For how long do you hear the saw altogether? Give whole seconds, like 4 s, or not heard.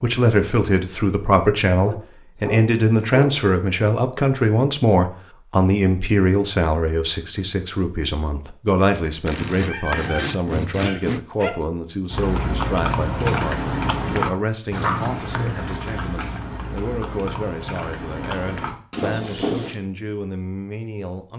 2 s.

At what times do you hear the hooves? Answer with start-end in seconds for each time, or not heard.
12.1-19.8.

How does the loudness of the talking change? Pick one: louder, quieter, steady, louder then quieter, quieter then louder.
quieter.